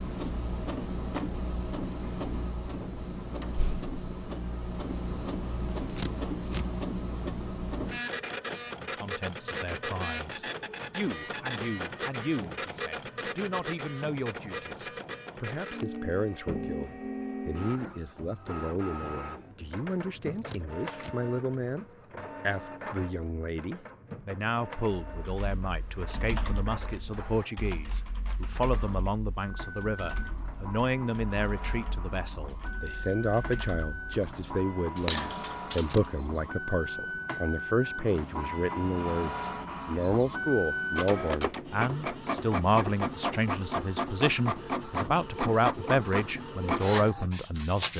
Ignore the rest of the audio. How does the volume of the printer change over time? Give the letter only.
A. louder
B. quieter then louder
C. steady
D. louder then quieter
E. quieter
B.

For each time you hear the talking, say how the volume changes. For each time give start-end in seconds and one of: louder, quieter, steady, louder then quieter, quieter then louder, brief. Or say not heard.
8.8-47.9 louder.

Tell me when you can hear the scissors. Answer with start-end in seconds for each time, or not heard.
5.8-6.7, 20.4-21.1, 35.8-36.2.